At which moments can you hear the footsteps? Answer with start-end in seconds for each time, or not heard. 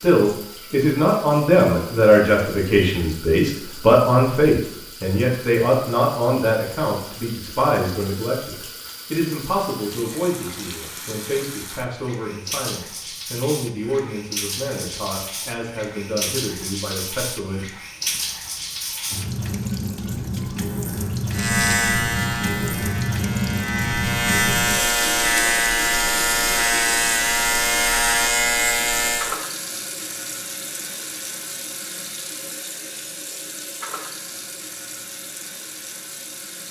not heard.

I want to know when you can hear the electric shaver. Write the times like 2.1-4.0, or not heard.
21.3-29.4.